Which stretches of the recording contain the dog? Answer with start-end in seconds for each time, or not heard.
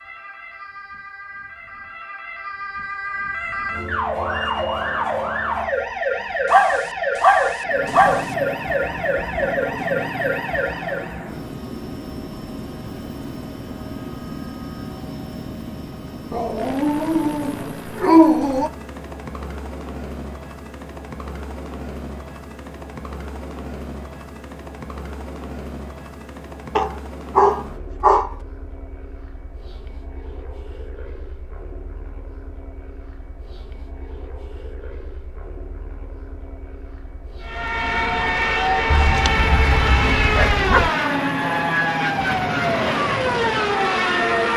6.5-8.2, 16.3-18.7, 26.8-28.3, 38.9-40.9.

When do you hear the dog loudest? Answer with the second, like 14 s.
18 s.